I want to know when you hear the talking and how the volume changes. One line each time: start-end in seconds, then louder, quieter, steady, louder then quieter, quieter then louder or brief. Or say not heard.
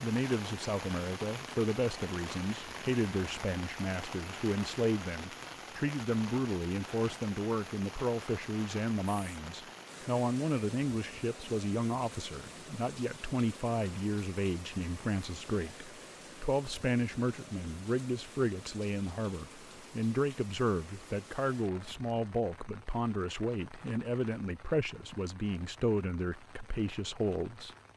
0.0-27.7 steady.